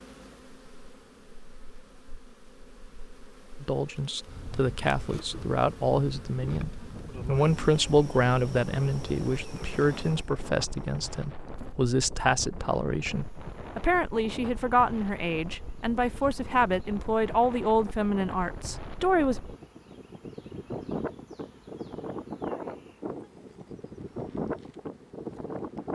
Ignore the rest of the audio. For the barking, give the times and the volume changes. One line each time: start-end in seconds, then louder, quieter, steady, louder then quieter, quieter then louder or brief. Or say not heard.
not heard.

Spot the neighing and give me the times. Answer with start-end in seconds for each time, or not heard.
not heard.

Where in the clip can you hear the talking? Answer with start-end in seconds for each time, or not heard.
3.6-19.4.